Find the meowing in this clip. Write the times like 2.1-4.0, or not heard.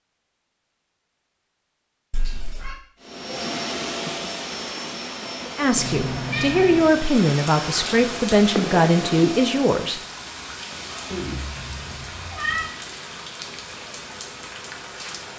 2.1-2.8, 5.8-7.0, 11.1-12.7.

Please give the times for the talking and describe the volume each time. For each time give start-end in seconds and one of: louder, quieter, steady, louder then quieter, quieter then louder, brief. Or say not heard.
5.5-10.0 steady.